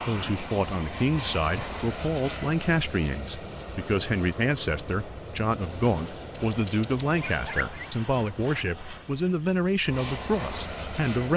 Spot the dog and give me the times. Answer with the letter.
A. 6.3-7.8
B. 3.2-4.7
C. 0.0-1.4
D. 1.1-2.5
A.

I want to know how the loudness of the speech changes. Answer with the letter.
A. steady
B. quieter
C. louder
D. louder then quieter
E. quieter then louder
A.